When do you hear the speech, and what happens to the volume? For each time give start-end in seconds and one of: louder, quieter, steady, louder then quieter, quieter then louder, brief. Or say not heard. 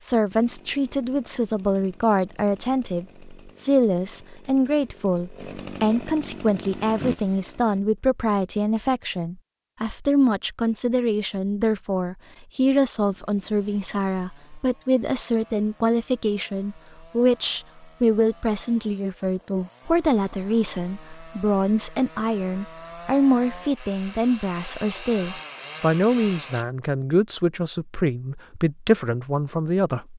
0.0-30.1 steady.